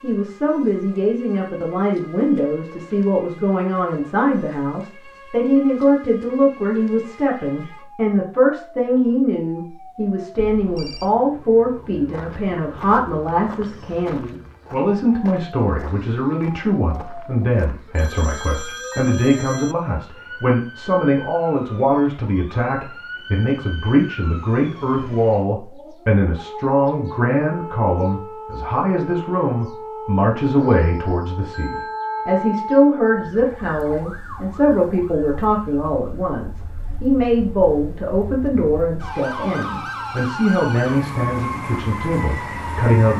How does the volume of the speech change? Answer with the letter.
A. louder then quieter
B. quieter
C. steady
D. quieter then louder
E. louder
C.